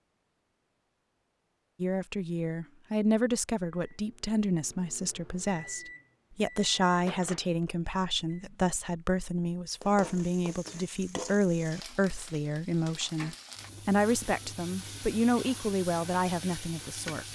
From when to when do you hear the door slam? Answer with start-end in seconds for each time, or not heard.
not heard.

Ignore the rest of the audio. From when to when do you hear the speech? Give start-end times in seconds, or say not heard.
1.8-17.3.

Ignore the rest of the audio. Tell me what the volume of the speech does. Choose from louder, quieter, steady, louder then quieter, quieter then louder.
steady.